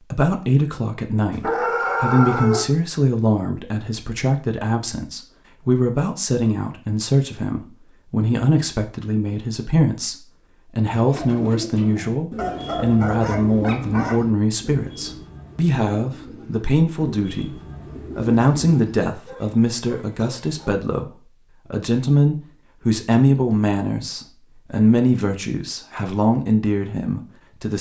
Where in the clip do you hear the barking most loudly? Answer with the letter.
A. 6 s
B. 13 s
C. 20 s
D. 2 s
D.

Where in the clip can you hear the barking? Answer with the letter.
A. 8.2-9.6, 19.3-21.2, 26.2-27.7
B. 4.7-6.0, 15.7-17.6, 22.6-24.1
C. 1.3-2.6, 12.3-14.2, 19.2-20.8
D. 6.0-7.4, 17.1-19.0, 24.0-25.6
C.